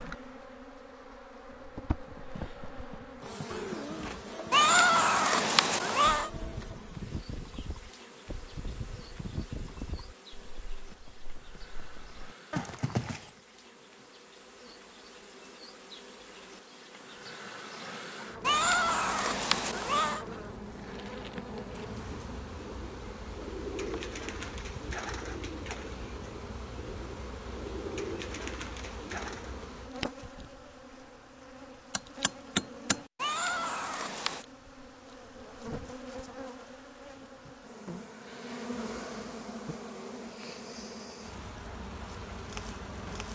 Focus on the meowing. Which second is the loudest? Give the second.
5 s.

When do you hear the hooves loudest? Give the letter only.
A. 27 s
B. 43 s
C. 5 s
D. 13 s
D.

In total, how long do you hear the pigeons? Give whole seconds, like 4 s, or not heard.
8 s.